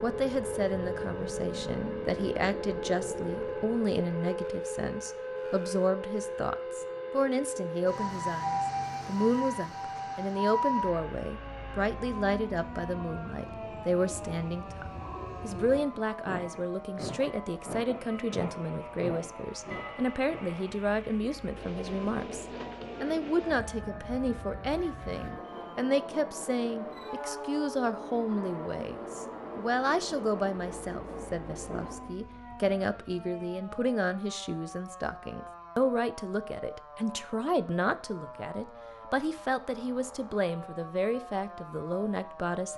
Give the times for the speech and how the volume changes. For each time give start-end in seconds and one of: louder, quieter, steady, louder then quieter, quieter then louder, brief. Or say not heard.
0.0-42.7 steady.